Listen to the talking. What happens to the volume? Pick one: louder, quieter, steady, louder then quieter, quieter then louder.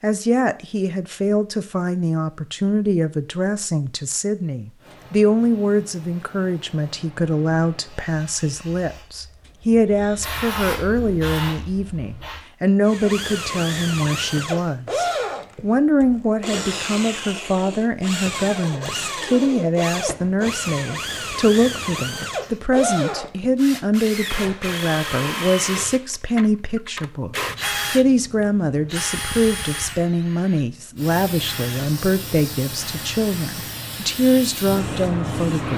steady.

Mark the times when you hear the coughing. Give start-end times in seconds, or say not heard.
not heard.